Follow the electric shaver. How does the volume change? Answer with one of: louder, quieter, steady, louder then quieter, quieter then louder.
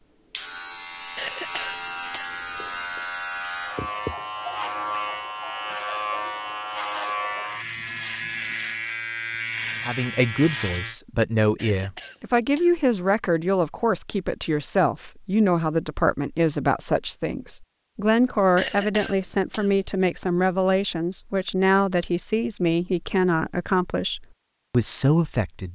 steady.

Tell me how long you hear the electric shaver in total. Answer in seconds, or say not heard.
11 s.